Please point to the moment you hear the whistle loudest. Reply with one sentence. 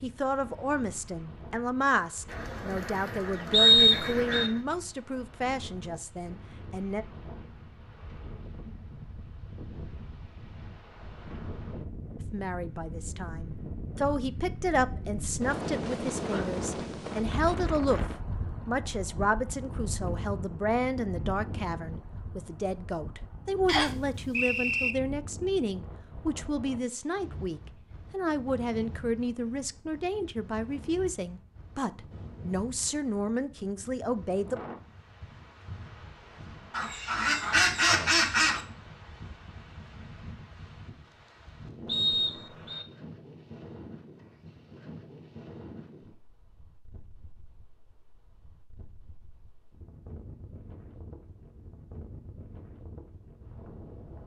The volume of the whistle peaks at 4 seconds.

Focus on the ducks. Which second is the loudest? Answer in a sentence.
The volume of the ducks peaks at 38 seconds.